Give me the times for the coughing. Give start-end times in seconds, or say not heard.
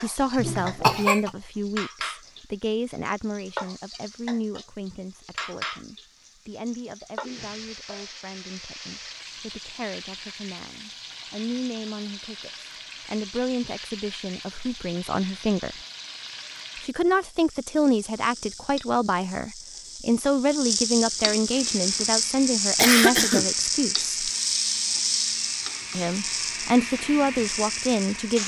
0.3-1.3, 22.8-23.4.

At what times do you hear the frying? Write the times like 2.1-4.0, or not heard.
0.0-28.4.